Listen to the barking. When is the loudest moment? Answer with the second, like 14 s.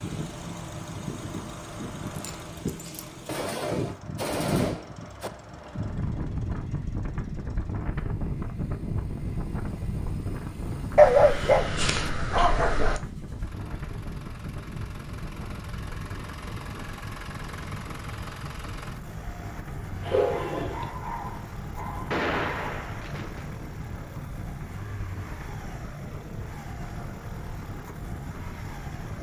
11 s.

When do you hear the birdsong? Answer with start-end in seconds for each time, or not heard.
not heard.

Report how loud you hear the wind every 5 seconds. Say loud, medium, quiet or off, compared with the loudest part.
loud, loud, loud, medium, medium, medium.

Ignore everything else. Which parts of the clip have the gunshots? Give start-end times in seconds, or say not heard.
3.2-5.3, 22.1-23.5.